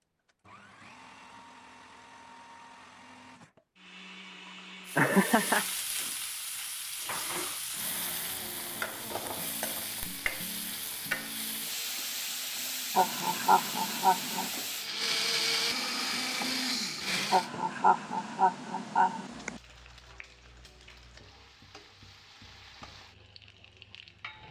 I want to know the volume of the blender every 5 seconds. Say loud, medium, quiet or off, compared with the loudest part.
quiet, quiet, quiet, loud, off.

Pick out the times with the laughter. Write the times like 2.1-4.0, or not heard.
5.0-5.7, 12.9-14.5, 17.3-19.6.